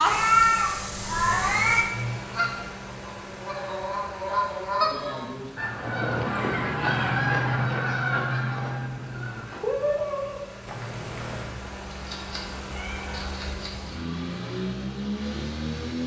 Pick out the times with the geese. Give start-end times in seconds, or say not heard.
2.3-11.5.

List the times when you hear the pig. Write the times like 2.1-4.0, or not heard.
not heard.